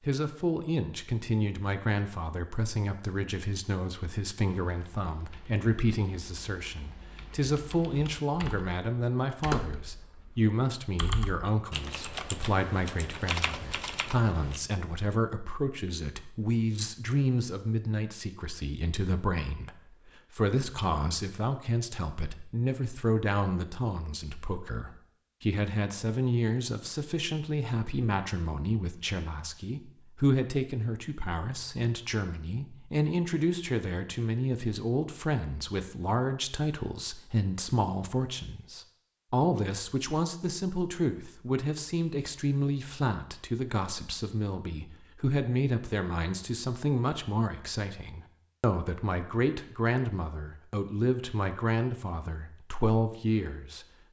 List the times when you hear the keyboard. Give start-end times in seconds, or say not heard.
4.5-14.6.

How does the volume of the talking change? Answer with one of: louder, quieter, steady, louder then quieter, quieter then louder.
steady.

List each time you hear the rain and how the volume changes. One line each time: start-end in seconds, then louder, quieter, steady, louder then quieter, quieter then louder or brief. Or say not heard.
not heard.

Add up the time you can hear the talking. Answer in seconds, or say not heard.
54 s.